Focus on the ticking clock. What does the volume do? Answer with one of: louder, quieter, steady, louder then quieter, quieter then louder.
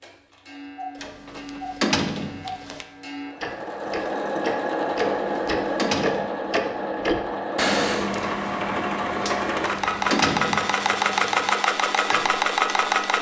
louder then quieter.